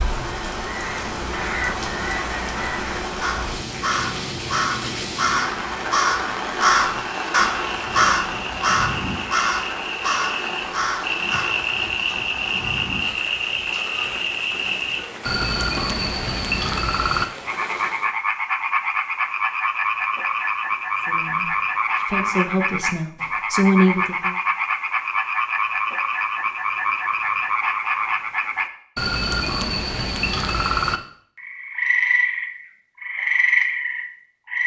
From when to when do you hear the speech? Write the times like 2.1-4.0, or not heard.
21.0-24.4.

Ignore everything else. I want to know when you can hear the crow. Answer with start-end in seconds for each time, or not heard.
0.1-11.7.